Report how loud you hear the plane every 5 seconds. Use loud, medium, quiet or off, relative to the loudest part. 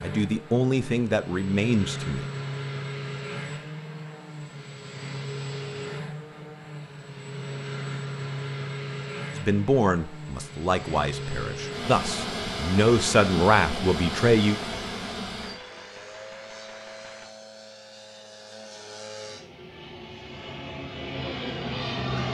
loud, loud, loud, medium, loud.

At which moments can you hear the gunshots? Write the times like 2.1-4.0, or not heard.
15.4-17.2.